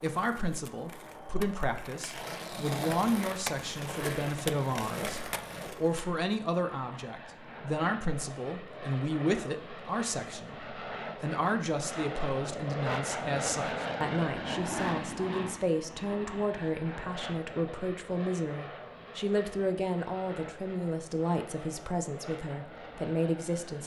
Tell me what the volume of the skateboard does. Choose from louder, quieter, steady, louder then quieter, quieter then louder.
louder.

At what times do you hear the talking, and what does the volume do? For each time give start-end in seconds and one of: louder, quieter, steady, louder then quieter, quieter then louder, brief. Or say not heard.
0.0-23.8 steady.